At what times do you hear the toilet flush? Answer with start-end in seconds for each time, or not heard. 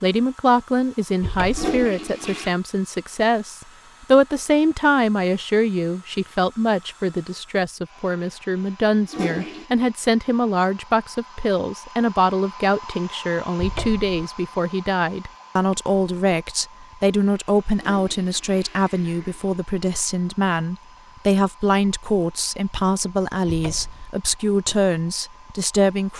1.5-2.5, 9.1-9.7, 17.8-19.6.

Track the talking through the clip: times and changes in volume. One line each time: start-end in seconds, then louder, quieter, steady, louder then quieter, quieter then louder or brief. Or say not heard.
0.0-26.1 steady.